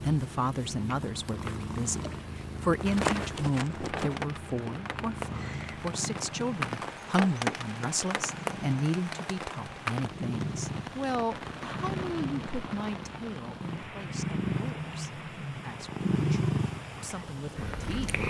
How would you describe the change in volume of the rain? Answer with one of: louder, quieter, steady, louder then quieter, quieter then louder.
louder then quieter.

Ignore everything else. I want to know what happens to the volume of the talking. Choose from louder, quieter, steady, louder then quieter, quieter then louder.
quieter.